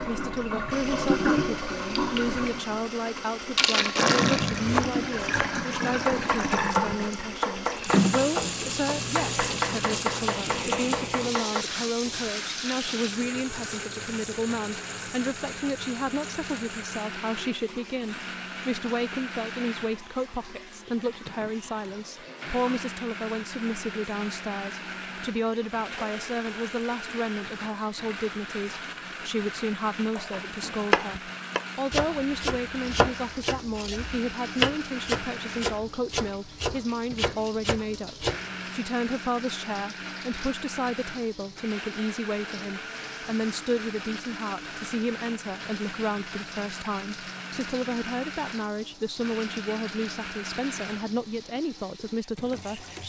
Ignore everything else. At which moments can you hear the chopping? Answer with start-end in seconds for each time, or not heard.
4.5-12.3, 30.3-38.5.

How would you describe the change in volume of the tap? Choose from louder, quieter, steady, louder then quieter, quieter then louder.
quieter.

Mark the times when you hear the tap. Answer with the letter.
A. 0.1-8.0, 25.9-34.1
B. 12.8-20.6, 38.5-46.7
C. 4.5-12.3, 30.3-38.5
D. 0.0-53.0
D.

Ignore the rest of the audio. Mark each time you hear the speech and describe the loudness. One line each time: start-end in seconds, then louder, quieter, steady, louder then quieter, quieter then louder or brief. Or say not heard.
0.1-53.0 steady.